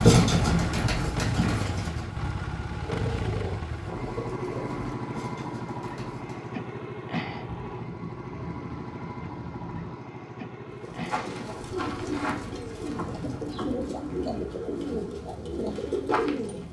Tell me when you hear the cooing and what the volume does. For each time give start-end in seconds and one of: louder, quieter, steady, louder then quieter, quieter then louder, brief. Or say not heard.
0.0-6.5 quieter
10.7-16.6 steady.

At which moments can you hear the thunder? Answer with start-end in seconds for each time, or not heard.
7.4-10.0.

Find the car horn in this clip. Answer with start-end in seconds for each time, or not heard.
not heard.